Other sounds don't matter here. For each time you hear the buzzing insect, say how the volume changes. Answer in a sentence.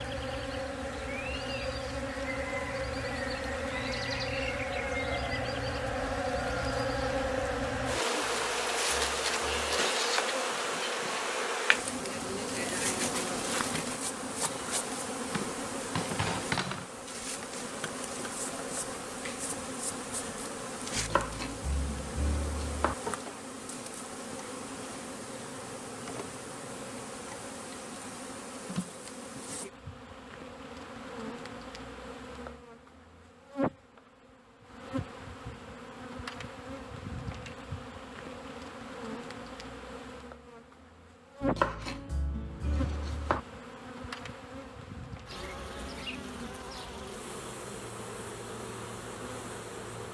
The buzzing insect can be heard from 0.0 to 50.0 s, getting quieter.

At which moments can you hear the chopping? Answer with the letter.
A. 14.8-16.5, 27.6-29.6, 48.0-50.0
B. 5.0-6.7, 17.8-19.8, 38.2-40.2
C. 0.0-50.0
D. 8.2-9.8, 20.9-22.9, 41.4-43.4
D.